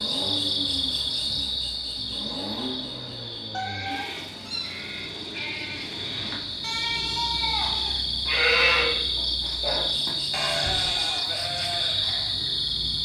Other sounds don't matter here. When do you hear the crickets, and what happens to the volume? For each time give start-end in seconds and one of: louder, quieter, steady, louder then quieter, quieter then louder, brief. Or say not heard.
0.0-13.0 quieter then louder.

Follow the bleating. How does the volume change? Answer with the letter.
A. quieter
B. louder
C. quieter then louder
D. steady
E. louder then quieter
E.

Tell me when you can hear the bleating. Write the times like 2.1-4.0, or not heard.
3.5-12.3.